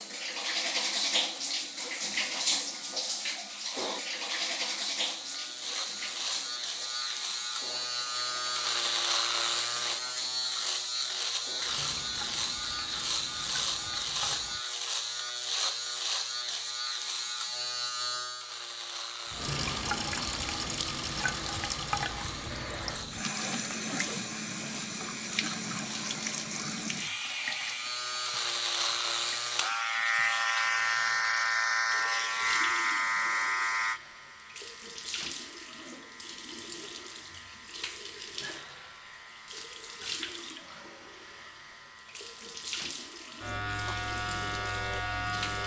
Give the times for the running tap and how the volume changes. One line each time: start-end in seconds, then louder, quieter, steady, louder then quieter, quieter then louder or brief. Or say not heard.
0.0-14.6 quieter
19.3-45.6 quieter.